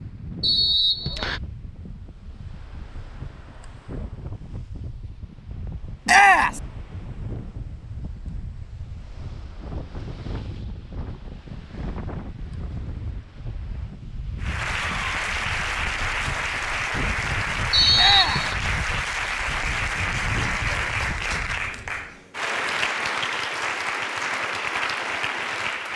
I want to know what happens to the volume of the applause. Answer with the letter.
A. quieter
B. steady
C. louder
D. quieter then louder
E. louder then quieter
B.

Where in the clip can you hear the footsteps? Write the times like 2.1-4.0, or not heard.
not heard.